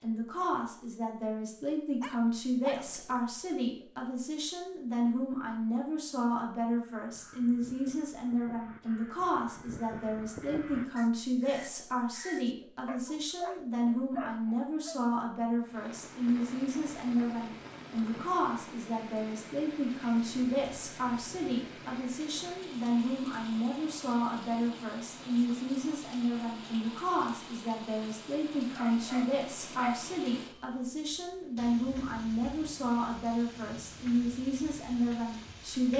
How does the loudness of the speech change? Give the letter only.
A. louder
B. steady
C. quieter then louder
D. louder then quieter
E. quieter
B.